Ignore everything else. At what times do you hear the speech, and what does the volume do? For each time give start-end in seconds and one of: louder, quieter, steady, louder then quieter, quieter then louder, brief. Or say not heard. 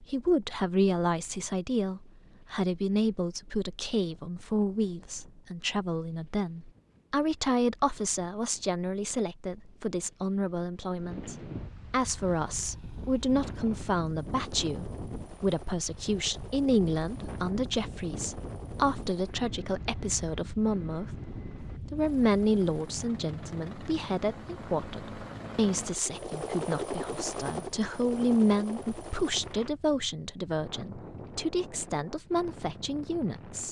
0.0-33.6 steady.